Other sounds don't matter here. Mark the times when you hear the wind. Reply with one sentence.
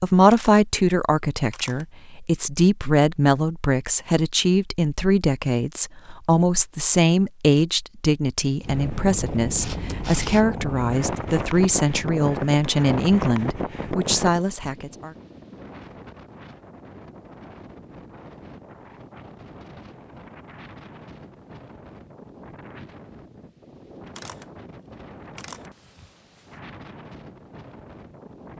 You can hear the wind from 8.6 to 28.5 s.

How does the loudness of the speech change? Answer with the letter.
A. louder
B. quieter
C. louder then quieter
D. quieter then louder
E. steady
E.